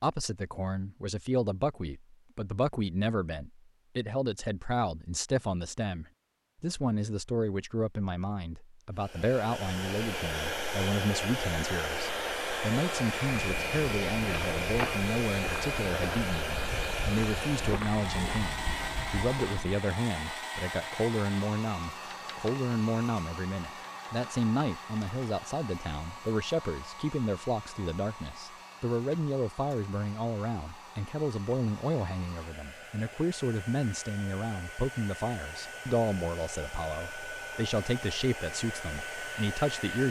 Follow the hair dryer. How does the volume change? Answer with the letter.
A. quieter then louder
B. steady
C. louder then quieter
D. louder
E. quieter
A.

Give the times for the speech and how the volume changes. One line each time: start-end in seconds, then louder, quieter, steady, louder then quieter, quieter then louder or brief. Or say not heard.
0.0-40.0 steady.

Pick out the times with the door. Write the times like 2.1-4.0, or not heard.
not heard.